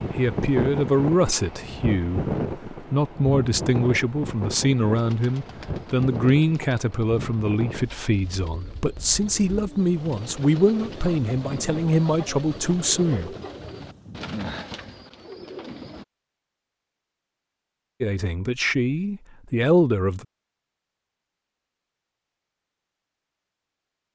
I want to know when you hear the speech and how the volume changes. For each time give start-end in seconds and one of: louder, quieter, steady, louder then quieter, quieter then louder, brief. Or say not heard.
0.1-13.3 steady
18.0-20.2 brief.